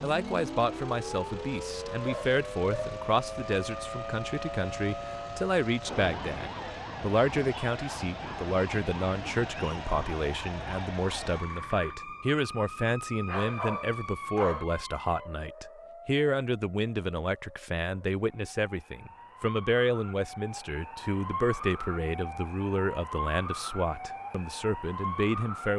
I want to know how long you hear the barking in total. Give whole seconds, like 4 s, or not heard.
2 s.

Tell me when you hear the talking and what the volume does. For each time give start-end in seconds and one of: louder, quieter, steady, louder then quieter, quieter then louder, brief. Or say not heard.
0.0-25.7 steady.